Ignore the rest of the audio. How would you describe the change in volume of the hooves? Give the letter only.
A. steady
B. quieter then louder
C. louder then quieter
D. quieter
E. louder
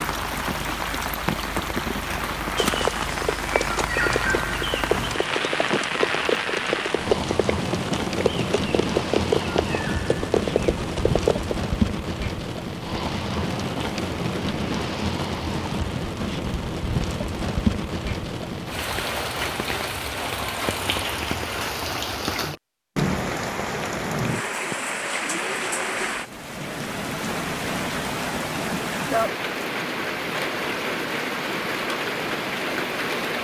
A.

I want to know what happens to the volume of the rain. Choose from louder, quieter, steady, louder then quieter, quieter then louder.
steady.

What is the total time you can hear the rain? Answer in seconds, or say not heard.
33 s.